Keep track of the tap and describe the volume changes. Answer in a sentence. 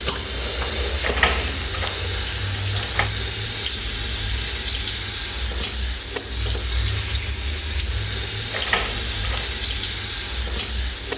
The loudness of the tap stays about the same.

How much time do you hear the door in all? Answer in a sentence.
The door can be heard for 3 seconds in total.